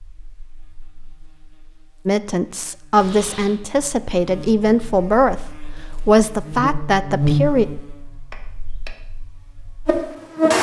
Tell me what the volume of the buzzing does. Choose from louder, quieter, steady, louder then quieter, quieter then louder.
louder then quieter.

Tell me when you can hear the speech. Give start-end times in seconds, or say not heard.
2.0-7.7.